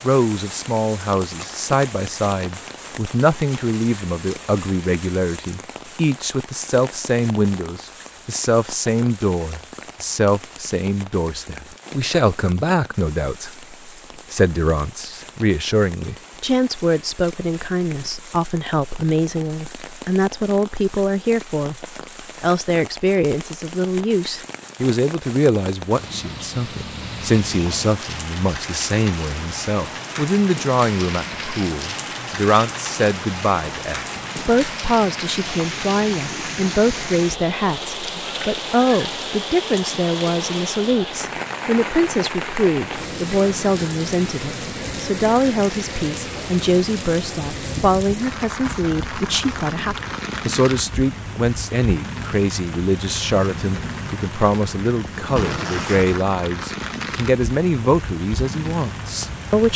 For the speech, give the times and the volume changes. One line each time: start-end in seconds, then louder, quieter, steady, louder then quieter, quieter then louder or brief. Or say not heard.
0.0-59.7 steady.